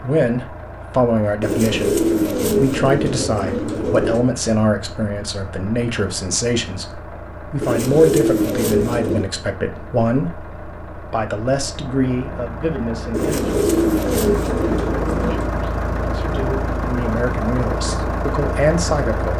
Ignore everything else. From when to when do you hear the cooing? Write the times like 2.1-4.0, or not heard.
1.4-4.3, 7.6-9.3, 13.1-15.5.